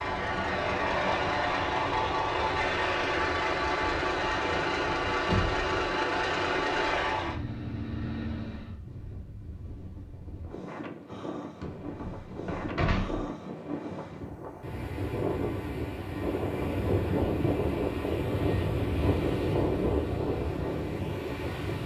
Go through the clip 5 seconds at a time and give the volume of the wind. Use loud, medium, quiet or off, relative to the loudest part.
quiet, quiet, medium, loud, loud.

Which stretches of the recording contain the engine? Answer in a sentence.
The engine can be heard from 0.0 to 8.8 s.